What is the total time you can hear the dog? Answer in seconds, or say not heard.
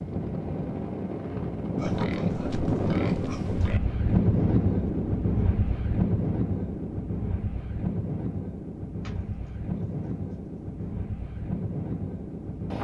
not heard.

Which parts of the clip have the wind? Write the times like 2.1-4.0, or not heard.
0.0-12.7.